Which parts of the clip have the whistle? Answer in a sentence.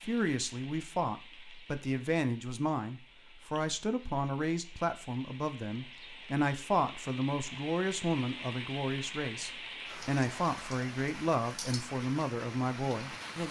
The whistle can't be heard in this clip.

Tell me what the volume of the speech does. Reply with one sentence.
The volume of the speech stays about the same.